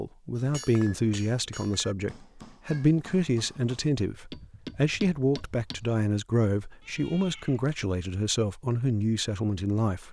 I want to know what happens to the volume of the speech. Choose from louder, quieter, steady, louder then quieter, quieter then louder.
steady.